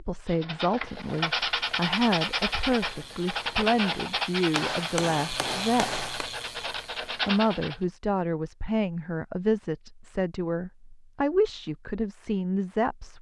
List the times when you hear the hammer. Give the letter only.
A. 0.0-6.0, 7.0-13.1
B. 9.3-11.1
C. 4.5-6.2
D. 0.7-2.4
C.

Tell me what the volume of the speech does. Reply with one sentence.
The loudness of the speech stays about the same.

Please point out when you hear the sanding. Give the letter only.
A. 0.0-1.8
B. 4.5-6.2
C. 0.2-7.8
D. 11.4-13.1
C.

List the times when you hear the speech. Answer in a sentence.
The speech can be heard from 0.0 to 6.0 s and from 7.0 to 13.1 s.